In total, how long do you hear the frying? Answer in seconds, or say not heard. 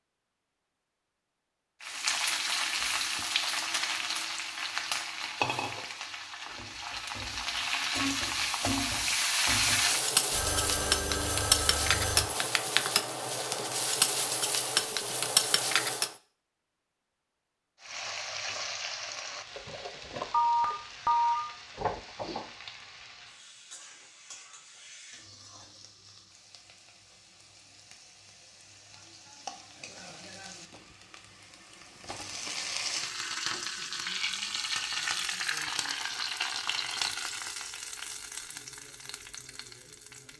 37 s.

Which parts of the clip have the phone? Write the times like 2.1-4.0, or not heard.
10.3-12.2, 20.3-21.4.